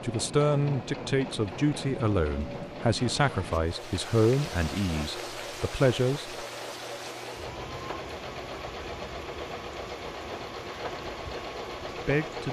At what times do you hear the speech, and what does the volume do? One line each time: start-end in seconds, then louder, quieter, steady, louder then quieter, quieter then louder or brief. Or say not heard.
0.0-6.3 steady
11.8-12.4 brief.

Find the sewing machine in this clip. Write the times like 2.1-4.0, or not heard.
0.0-12.4.